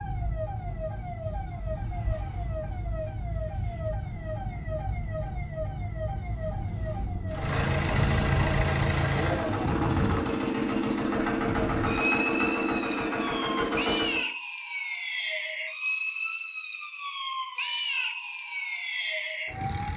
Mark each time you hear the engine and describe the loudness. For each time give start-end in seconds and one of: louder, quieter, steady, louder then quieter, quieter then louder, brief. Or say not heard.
7.2-14.3 steady.